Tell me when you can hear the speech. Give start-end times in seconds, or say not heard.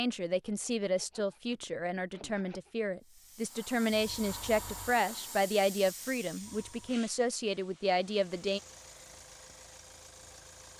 0.0-8.6.